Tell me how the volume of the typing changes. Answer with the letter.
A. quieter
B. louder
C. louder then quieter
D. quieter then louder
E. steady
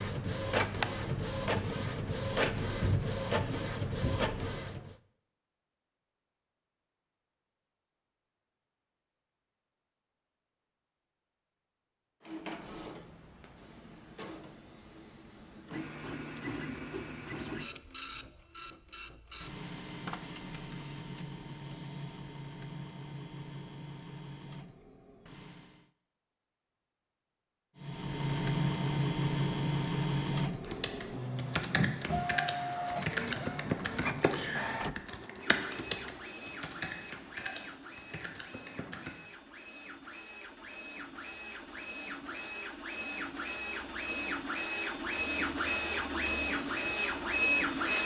A.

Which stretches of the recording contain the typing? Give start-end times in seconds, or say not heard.
30.6-39.1.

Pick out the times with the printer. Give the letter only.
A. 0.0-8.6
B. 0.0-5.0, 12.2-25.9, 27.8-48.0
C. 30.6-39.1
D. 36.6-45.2
B.